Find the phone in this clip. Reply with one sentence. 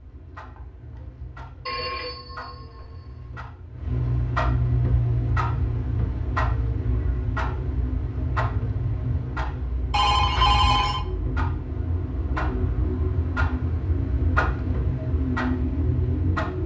You can hear the phone from 1.6 to 3.3 s and from 9.9 to 11.1 s.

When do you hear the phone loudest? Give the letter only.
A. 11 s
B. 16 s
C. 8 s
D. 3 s
A.